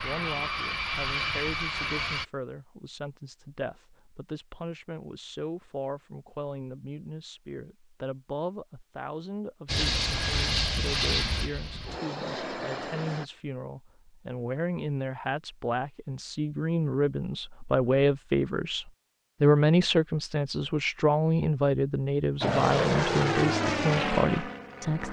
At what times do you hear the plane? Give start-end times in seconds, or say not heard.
0.0-2.2, 9.7-13.2, 22.4-25.0.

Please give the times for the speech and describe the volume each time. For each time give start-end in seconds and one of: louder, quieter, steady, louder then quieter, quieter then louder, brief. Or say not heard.
0.0-25.0 louder.